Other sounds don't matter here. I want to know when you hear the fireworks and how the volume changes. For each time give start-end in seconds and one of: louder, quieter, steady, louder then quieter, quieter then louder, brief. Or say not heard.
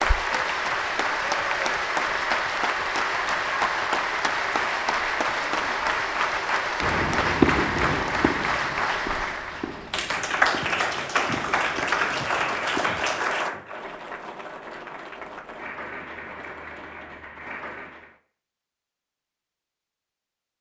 6.8-12.8 quieter.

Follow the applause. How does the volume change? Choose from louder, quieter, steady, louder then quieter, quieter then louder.
quieter.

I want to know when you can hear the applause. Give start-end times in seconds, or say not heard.
0.0-18.2.